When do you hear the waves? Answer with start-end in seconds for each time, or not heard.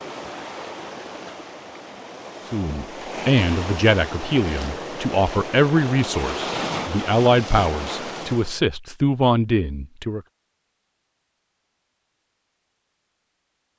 0.0-8.6.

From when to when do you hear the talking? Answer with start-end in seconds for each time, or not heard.
2.5-10.2.